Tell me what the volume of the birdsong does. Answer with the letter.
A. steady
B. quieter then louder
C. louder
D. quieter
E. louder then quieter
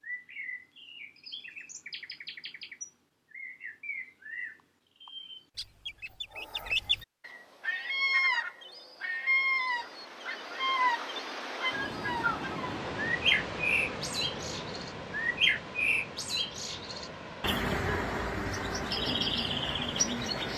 C.